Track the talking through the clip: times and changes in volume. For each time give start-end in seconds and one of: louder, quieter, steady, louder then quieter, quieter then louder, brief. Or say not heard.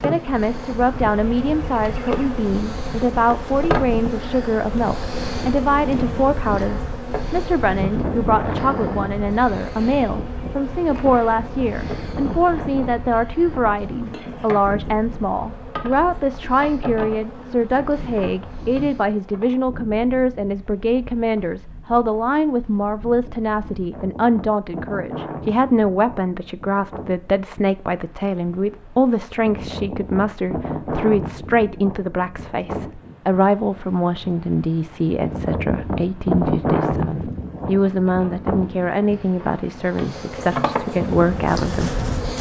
0.0-42.0 steady.